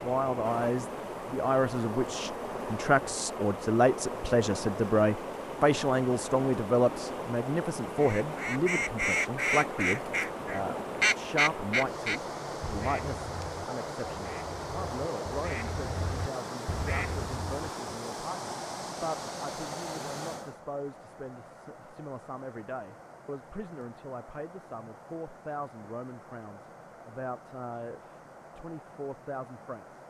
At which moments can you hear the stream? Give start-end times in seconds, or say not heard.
0.0-30.0.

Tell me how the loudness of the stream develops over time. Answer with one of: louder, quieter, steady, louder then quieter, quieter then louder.
quieter.